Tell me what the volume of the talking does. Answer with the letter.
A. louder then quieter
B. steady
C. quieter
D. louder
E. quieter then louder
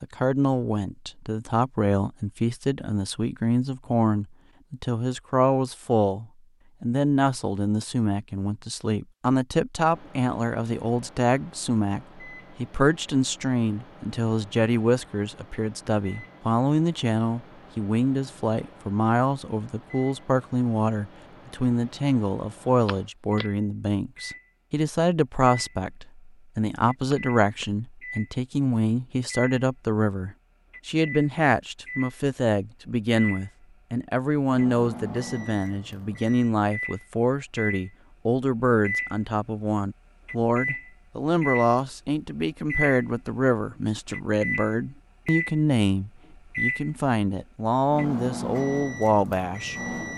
B.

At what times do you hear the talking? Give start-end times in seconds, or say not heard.
0.0-49.8.